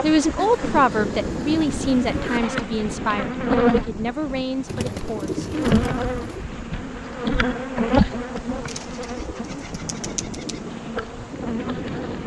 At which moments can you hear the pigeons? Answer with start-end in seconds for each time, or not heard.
0.3-2.4, 4.7-6.5, 8.7-10.6.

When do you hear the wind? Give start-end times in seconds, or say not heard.
0.0-12.2.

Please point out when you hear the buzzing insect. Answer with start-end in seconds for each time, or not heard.
0.0-3.9, 5.5-12.2.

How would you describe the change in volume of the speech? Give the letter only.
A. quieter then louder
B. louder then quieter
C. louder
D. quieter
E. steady
D.